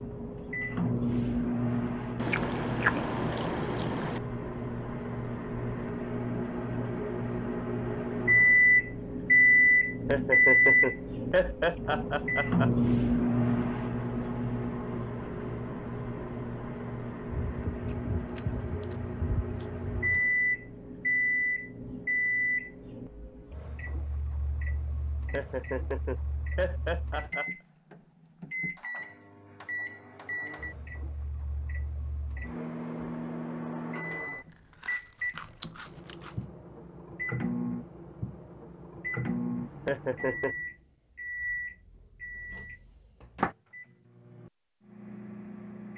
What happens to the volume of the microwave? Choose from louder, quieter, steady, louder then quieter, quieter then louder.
quieter.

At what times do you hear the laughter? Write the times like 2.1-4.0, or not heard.
10.1-12.7, 25.3-27.5, 39.9-40.5.